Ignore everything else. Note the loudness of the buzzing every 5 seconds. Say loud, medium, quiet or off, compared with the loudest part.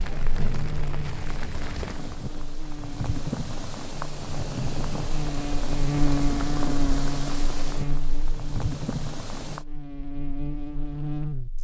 medium, loud, loud.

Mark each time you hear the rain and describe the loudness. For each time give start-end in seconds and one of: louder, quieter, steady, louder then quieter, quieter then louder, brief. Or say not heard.
0.0-9.7 steady.